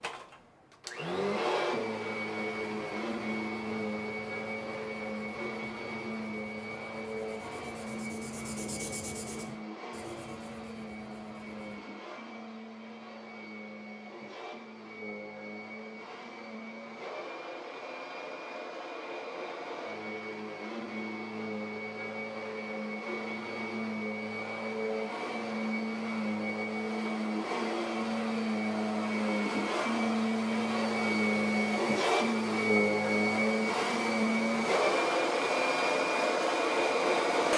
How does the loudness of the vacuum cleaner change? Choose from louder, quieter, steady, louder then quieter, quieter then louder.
quieter then louder.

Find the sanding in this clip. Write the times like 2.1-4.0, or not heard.
2.6-11.8.